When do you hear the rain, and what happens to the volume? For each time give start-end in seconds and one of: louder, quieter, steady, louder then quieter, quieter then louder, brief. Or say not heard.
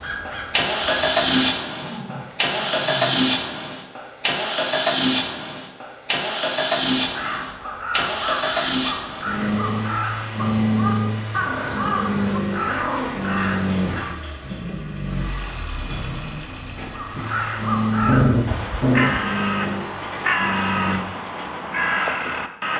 not heard.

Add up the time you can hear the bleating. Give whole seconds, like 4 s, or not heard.
not heard.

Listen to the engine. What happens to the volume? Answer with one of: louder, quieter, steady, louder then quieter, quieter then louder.
quieter.